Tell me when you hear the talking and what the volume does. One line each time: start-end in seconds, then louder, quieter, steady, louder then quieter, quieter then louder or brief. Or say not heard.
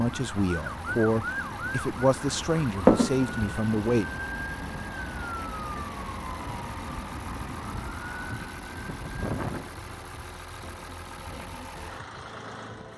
0.0-4.1 steady.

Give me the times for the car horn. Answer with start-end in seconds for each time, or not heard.
not heard.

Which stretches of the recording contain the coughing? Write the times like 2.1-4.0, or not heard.
2.9-3.3.